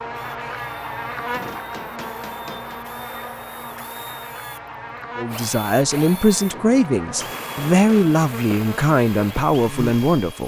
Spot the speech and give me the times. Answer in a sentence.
You can hear the speech from 5.2 to 10.4 s.